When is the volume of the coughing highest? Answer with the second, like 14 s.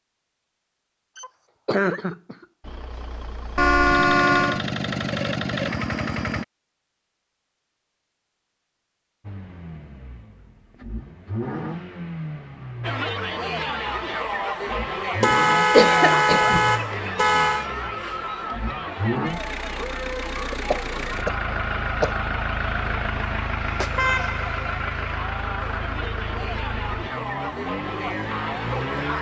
16 s.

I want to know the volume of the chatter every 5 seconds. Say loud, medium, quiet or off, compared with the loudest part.
off, off, loud, loud, medium, loud.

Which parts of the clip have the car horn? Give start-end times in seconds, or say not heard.
3.5-4.6, 15.2-17.6, 23.6-24.6.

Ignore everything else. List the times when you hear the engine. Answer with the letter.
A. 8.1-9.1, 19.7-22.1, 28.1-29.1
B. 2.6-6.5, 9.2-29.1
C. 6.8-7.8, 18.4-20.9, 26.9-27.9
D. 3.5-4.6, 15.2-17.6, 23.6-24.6
B.